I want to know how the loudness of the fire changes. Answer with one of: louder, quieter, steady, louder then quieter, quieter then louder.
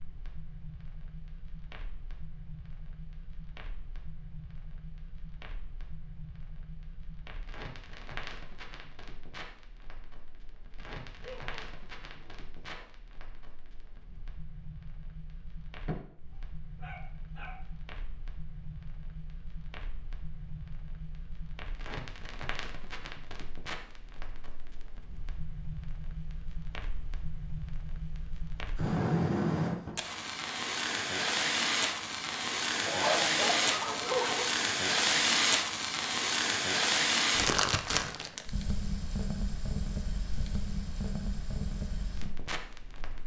louder.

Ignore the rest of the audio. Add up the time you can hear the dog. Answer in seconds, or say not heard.
5 s.